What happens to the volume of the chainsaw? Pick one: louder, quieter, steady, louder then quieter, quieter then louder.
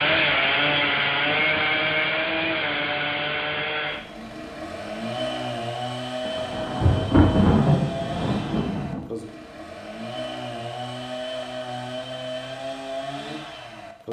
quieter.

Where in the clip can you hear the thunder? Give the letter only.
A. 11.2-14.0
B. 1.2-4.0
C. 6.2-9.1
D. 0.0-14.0
C.